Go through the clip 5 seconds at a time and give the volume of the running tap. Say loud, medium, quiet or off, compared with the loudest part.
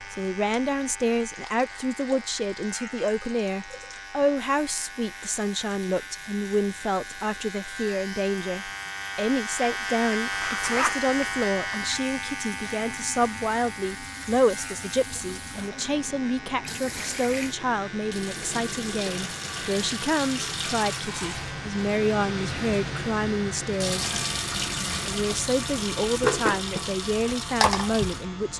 quiet, quiet, quiet, medium, loud, loud.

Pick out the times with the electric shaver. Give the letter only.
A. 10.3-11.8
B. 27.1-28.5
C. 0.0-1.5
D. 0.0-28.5
D.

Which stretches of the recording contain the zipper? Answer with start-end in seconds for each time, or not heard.
10.3-11.8.